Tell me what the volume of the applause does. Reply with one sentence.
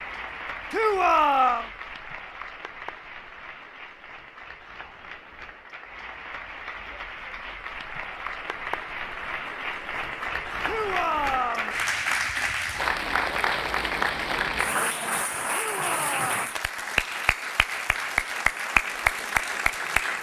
The volume of the applause goes up.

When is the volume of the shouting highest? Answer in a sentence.
The volume of the shouting peaks at 1 second.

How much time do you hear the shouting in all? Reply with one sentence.
The shouting can be heard for 3 seconds in total.